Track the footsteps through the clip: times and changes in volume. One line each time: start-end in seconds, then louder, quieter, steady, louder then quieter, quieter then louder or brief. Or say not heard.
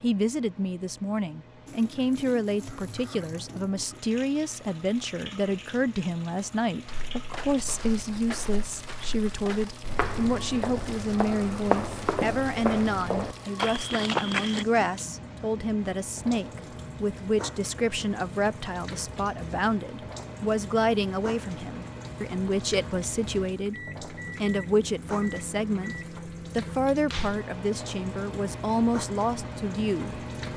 6.8-14.7 louder.